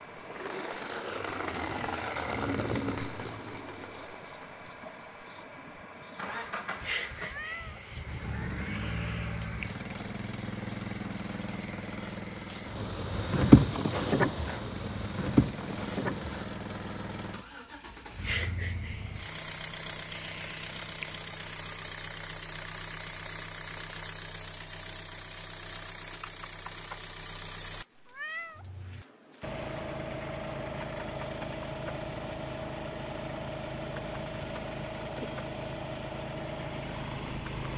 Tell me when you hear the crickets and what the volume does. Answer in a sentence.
You can hear the crickets from 0.0 to 37.7 s, getting louder then quieter.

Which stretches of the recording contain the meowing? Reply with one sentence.
The meowing can be heard from 7.2 to 7.8 s and from 28.1 to 28.6 s.